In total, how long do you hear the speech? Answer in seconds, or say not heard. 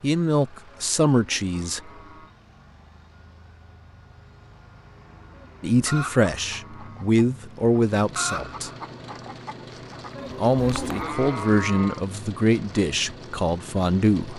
9 s.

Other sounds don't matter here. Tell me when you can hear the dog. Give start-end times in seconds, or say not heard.
not heard.